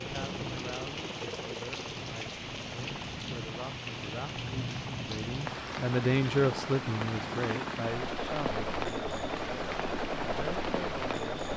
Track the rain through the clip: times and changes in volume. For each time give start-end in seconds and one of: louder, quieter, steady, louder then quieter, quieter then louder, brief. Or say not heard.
0.0-11.5 steady.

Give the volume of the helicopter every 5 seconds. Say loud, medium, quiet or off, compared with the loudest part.
medium, loud, loud.